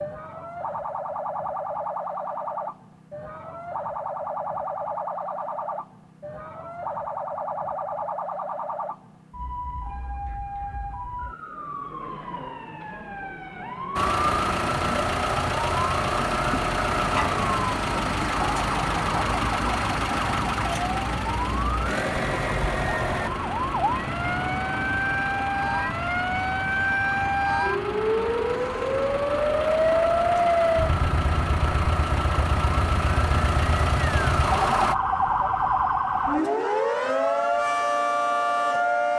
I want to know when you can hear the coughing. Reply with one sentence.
You can't hear the coughing here.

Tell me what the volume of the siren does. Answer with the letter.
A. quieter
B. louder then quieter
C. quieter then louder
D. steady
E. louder
E.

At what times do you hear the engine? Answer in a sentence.
The engine can be heard from 13.9 to 35.0 s.